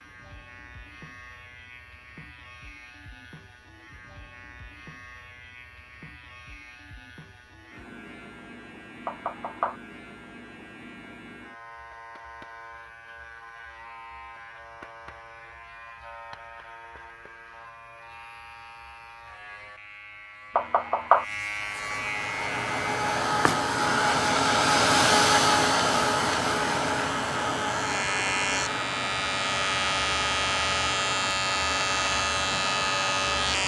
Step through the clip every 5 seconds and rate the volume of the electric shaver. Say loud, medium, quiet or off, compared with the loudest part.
quiet, quiet, quiet, quiet, medium, loud, loud.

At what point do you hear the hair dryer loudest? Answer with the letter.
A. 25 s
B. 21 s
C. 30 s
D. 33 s
A.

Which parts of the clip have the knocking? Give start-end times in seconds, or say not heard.
9.1-9.8, 20.6-21.2.